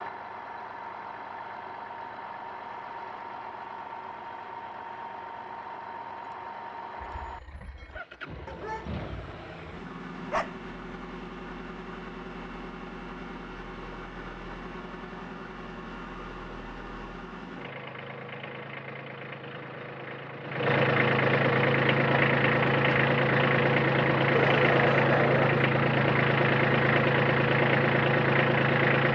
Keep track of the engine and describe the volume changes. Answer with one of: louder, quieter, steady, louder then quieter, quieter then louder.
louder.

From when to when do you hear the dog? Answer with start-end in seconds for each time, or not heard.
8.4-10.6, 24.3-25.6.